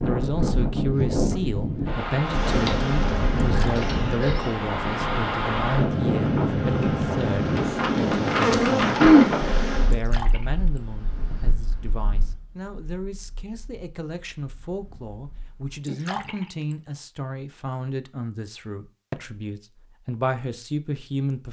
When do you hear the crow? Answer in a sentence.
You can't hear the crow here.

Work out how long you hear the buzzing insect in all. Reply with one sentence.
The buzzing insect can be heard for 8 seconds in total.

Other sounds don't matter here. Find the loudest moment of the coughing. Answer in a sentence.
The loudest moment of the coughing is at 9 seconds.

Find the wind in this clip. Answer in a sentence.
The wind can be heard from 0.0 to 15.7 s.